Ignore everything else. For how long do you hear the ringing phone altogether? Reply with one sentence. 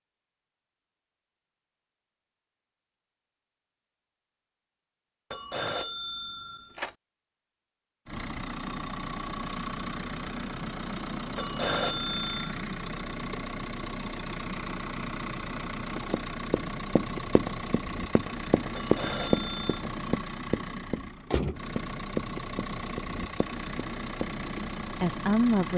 The ringing phone can be heard for 4 seconds in total.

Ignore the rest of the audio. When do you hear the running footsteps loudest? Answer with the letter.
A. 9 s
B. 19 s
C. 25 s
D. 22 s
B.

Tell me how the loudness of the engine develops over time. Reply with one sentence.
The volume of the engine stays about the same.